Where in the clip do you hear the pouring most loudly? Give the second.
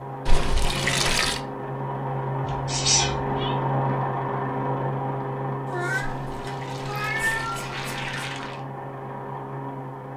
1 s.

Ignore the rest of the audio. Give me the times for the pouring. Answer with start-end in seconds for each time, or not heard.
0.2-1.4, 6.0-8.6.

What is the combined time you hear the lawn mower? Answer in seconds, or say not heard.
10 s.